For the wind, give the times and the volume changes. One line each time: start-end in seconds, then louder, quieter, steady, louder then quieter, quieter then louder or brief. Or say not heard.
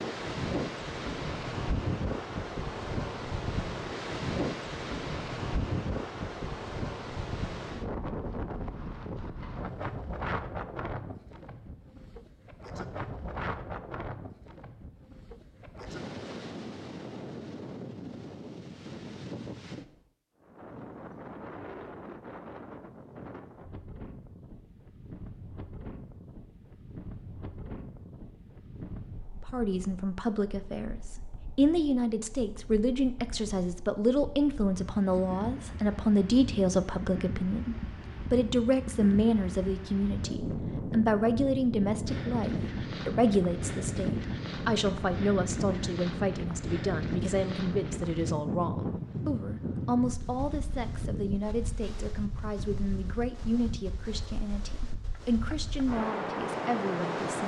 0.0-57.4 quieter then louder.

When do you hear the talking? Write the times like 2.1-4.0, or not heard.
29.4-57.4.